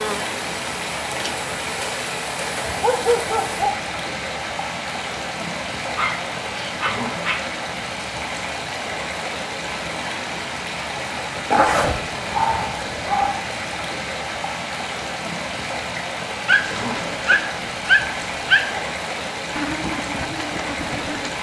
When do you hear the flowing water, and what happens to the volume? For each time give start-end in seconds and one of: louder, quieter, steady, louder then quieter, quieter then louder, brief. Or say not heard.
0.0-21.3 steady.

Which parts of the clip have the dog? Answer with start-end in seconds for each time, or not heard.
2.8-3.8, 6.0-7.4, 11.5-13.4, 16.4-18.9.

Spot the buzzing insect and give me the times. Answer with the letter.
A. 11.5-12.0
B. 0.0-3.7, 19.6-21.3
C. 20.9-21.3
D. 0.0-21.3
B.